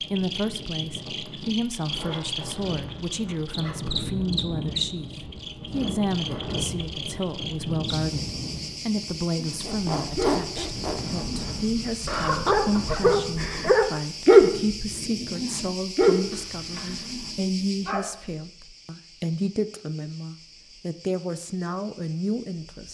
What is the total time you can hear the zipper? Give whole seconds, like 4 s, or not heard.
4 s.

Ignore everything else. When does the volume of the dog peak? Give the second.
14 s.